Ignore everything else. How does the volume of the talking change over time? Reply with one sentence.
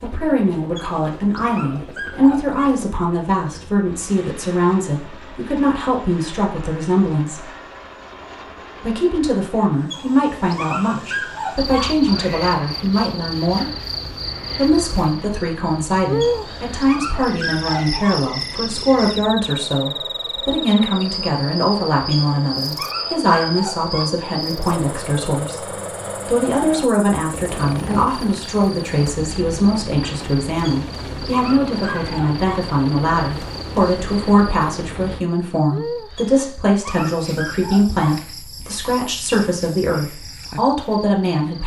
The volume of the talking stays about the same.